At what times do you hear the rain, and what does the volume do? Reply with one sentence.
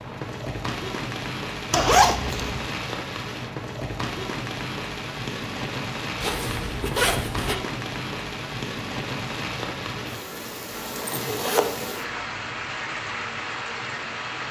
You can hear the rain from 0.0 to 14.4 s, at a steady volume.